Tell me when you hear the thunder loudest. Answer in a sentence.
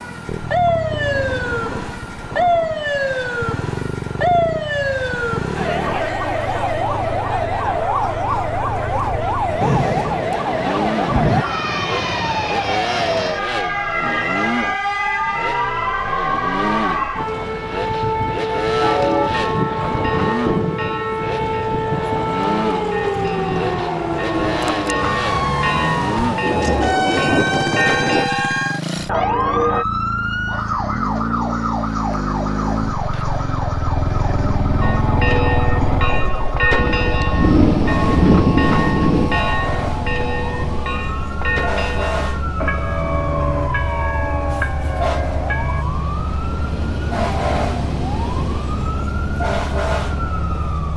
The volume of the thunder peaks at 38 seconds.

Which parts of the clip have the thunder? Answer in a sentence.
You can hear the thunder from 9.6 to 11.4 s, from 26.4 to 28.2 s and from 36.8 to 39.5 s.